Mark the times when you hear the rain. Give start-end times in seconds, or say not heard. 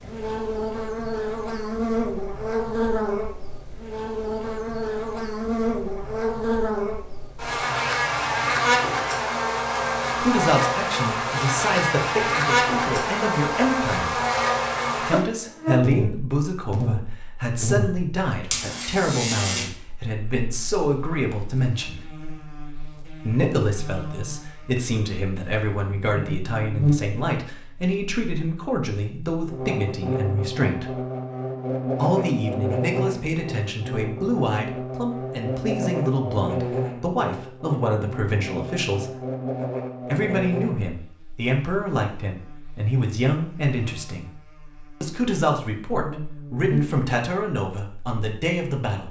not heard.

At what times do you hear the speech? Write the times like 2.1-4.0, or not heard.
10.2-14.2, 14.9-22.1, 23.2-30.9, 31.9-39.1, 40.0-44.3, 45.0-49.0.